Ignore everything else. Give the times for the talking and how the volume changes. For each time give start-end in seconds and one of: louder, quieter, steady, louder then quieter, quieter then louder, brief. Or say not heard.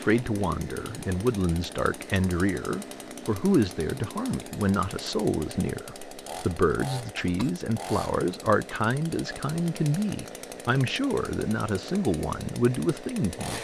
0.0-13.5 steady.